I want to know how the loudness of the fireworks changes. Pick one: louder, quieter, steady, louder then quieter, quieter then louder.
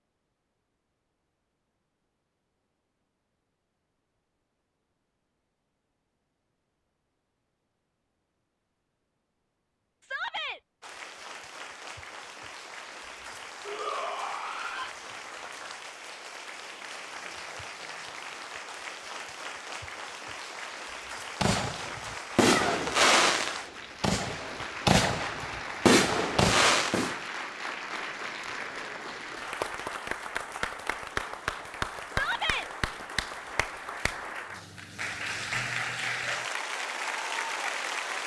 quieter then louder.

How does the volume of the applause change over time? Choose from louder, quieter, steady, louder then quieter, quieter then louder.
louder.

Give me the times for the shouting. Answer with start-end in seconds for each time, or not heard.
10.0-10.6, 13.7-14.9, 32.0-32.6.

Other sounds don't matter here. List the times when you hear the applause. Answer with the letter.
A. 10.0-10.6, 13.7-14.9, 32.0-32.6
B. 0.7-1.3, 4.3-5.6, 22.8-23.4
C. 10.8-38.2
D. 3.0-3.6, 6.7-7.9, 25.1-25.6
C.